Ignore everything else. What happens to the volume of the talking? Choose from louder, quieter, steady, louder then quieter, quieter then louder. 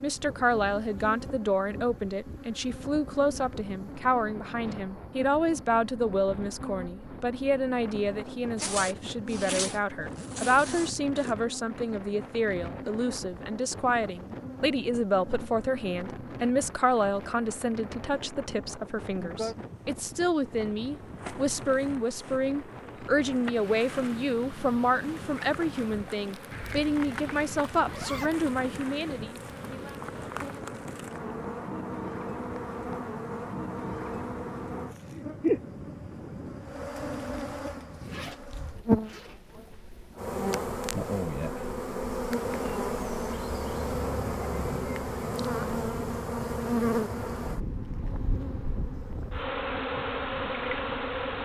steady.